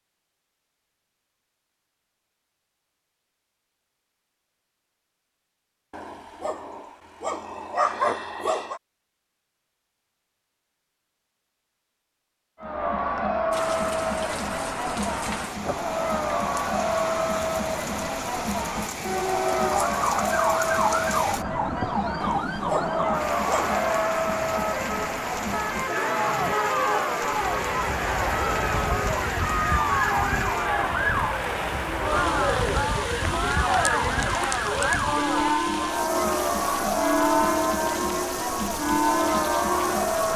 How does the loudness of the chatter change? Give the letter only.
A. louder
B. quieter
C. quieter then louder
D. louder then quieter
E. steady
E.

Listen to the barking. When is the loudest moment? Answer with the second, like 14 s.
8 s.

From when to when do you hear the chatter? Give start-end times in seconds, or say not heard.
12.6-40.3.